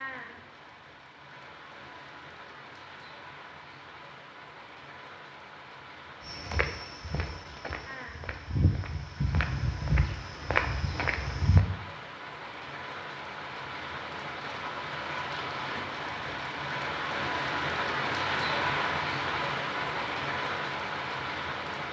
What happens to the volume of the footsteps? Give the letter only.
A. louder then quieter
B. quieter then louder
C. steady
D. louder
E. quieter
D.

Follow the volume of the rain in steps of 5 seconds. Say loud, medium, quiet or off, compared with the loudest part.
quiet, quiet, medium, loud, loud.